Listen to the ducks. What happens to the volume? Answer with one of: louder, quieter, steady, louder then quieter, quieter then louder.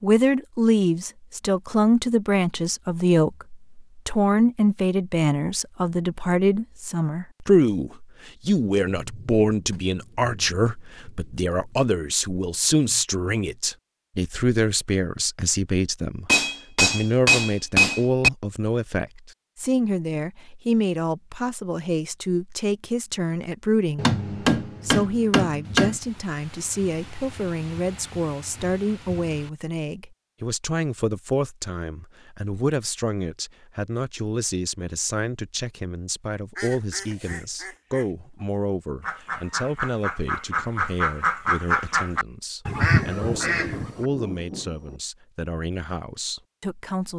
louder.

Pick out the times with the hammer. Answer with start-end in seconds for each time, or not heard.
16.2-18.3, 23.9-26.0.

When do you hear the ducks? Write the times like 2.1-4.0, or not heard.
36.5-44.0.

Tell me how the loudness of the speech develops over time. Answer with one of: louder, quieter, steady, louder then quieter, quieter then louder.
quieter.